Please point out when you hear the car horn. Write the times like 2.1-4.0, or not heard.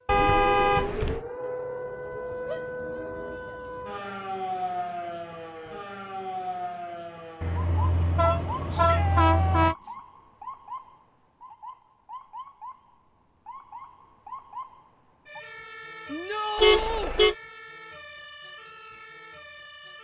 0.1-1.2, 7.4-9.8, 16.6-17.4.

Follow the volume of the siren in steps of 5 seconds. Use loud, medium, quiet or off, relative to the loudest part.
loud, loud, medium, medium.